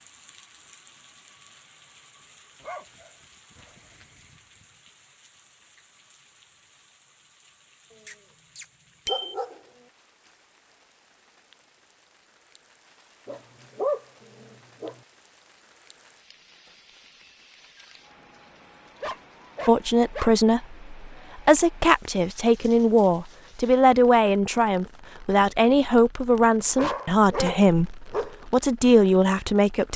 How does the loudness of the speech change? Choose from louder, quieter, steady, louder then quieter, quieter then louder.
steady.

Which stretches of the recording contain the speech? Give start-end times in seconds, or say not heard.
19.6-29.9.